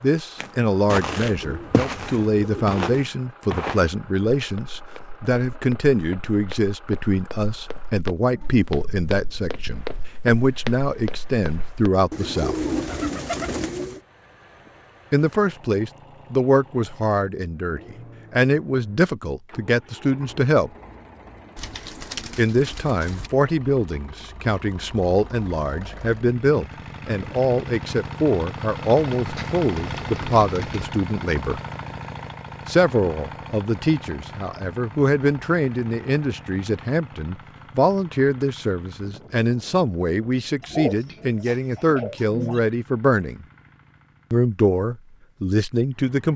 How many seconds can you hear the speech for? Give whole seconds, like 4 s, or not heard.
40 s.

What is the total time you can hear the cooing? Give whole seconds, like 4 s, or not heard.
9 s.